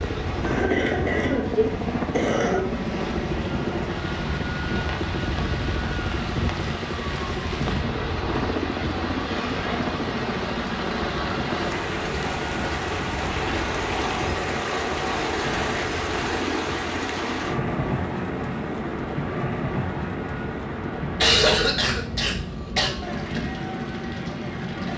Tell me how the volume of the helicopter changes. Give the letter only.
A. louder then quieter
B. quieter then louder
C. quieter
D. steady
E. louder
C.